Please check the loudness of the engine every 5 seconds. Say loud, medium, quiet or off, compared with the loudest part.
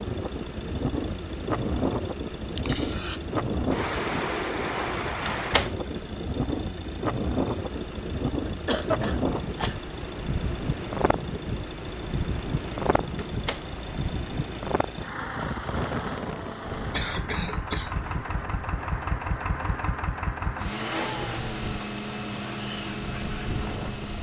medium, medium, medium, loud, loud.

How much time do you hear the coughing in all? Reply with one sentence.
You can hear the coughing for 3 seconds altogether.